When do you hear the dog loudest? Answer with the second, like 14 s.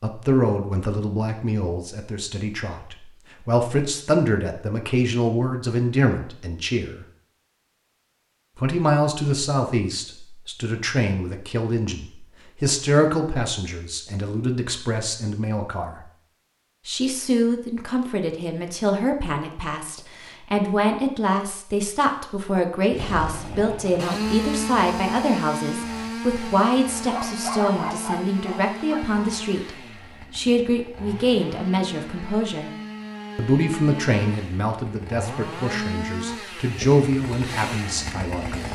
28 s.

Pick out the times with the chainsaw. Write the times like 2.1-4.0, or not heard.
22.9-38.7.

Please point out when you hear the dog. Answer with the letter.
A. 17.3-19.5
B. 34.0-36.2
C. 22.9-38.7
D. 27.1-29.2
D.